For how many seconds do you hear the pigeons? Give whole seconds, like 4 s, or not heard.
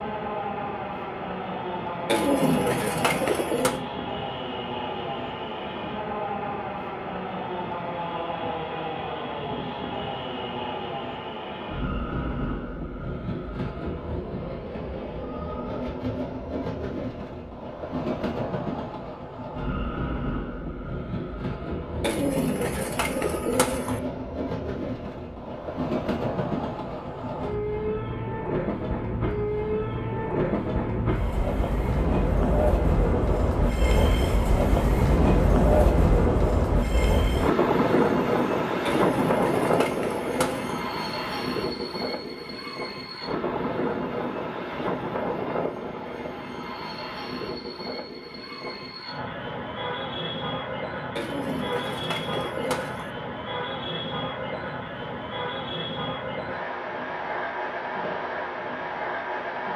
8 s.